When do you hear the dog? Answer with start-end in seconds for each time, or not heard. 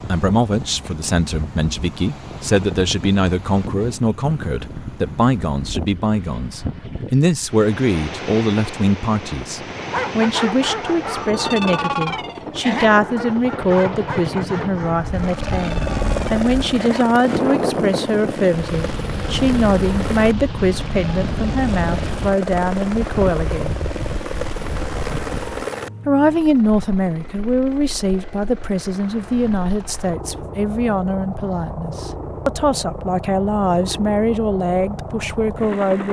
9.8-17.1.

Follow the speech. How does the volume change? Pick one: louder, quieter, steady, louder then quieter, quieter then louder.
steady.